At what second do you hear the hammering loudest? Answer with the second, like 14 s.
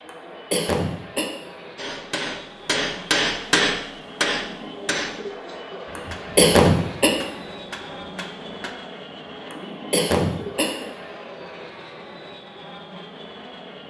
4 s.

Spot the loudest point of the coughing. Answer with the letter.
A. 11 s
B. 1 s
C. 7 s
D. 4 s
C.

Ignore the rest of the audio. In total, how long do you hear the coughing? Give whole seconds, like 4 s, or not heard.
4 s.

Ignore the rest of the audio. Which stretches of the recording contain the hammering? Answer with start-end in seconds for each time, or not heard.
1.8-8.8.